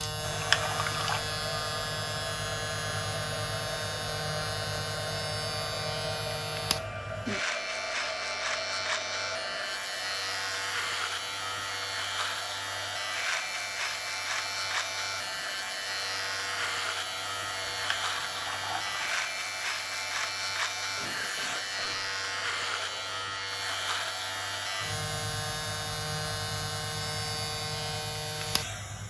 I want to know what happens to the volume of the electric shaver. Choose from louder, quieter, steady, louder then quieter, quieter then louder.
steady.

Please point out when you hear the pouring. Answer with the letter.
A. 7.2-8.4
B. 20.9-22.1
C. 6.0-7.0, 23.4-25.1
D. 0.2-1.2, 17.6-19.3
D.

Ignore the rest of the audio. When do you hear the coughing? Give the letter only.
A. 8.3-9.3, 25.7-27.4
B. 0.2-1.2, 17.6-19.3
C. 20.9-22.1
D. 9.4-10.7
C.